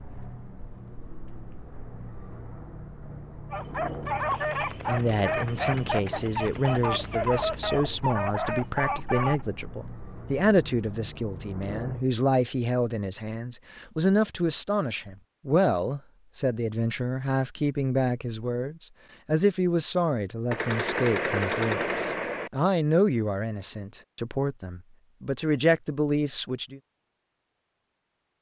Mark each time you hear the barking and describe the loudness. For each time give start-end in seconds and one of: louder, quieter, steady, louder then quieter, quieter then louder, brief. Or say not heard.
3.5-9.4 steady.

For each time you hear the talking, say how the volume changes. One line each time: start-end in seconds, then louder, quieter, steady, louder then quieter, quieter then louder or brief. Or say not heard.
4.8-26.8 steady.